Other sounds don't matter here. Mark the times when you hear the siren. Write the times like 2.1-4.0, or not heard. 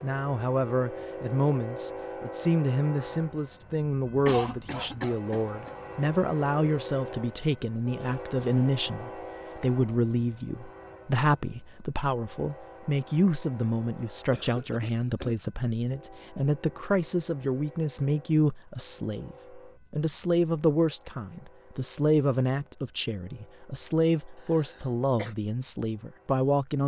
not heard.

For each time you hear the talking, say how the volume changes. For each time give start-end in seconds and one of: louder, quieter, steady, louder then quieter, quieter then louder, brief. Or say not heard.
0.0-26.8 steady.